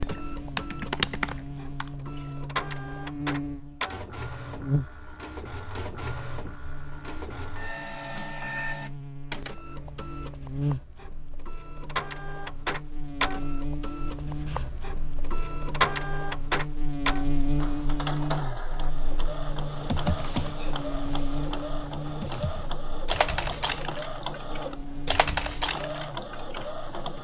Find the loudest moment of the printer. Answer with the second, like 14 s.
16 s.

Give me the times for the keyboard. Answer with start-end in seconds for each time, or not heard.
0.0-2.4, 19.9-27.1.